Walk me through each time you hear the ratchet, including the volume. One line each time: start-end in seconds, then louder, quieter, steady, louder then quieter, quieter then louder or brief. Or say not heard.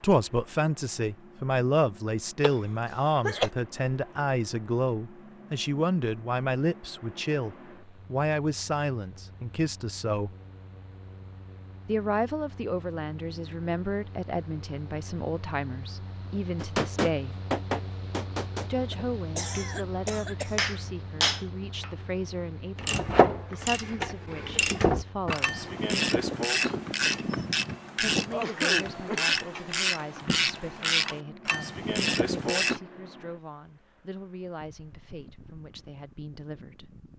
22.8-32.8 steady.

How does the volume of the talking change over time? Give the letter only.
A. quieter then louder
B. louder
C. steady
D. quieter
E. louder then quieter
D.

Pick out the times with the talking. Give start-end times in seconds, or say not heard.
0.0-10.3, 11.8-17.4, 18.7-25.7, 27.9-36.9.